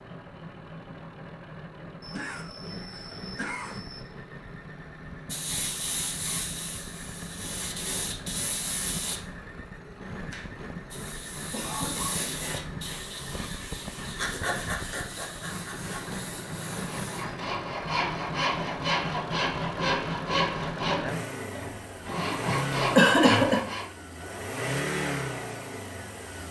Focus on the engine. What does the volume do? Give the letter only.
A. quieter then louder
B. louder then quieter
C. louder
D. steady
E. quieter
C.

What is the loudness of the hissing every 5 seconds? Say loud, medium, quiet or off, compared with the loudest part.
off, loud, loud, medium, off, off.